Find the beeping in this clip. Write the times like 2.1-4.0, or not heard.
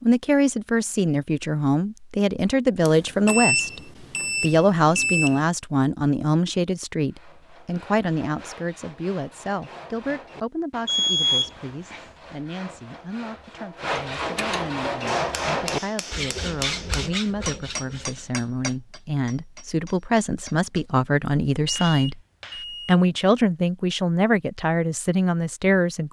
2.9-5.3, 10.8-12.0, 21.9-23.0.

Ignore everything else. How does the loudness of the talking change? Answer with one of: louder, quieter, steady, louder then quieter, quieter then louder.
quieter then louder.